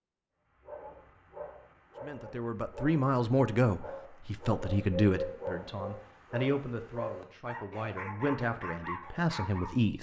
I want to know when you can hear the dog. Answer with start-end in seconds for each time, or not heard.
0.5-9.8.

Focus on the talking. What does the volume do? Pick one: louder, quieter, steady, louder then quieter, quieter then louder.
quieter then louder.